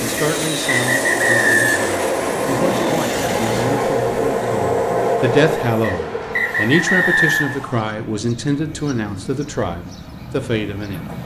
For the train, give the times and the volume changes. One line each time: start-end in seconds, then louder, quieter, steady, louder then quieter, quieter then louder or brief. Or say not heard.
0.0-11.2 quieter.